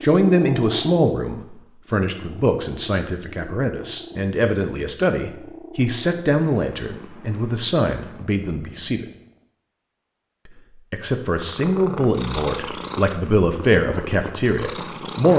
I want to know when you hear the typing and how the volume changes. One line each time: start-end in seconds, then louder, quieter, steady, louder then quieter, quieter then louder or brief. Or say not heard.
not heard.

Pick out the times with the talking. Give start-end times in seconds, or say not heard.
0.0-9.1, 10.9-15.3.